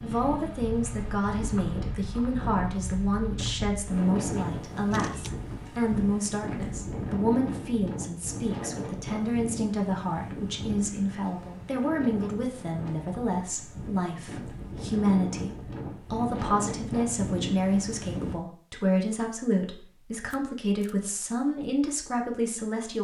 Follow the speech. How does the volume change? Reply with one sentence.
The volume of the speech stays about the same.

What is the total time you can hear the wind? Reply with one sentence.
You can hear the wind for 18 seconds altogether.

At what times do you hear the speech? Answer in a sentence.
You can hear the speech from 0.0 to 22.9 s.